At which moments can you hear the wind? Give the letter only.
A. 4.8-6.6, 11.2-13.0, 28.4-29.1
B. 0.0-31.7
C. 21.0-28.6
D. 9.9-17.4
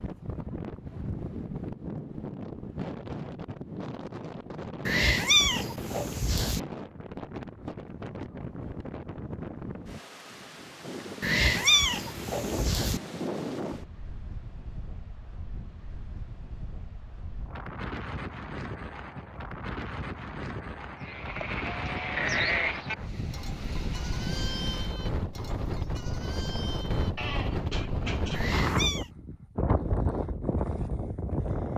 B.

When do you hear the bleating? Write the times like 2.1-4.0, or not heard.
21.0-28.6.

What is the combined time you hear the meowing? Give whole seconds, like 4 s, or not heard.
4 s.